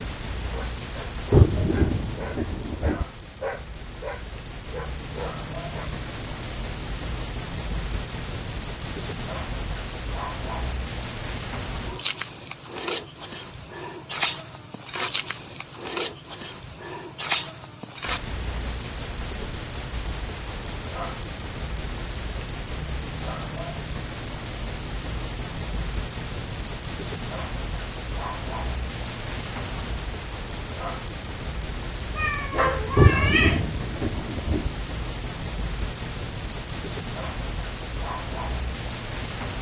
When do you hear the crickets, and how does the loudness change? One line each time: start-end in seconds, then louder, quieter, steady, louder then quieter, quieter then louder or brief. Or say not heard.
0.0-39.5 steady.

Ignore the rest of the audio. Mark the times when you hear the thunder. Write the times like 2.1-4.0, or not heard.
1.3-3.0, 33.0-34.7.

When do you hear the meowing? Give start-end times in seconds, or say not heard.
32.1-33.6.